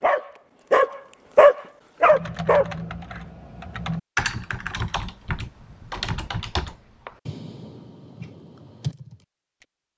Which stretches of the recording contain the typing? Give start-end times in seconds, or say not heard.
2.0-9.7.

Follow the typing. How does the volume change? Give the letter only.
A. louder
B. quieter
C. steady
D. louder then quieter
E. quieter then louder
D.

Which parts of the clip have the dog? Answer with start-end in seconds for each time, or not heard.
0.0-3.2.